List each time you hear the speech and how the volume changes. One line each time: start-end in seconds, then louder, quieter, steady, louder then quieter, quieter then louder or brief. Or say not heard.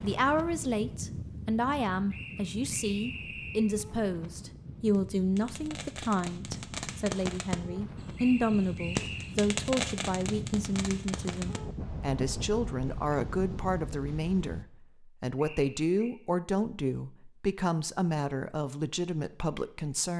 0.0-20.1 steady.